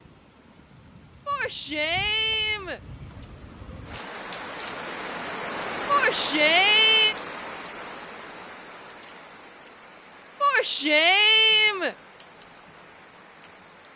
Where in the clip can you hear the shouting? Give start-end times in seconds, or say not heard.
1.2-2.8, 5.8-7.2, 10.4-11.9.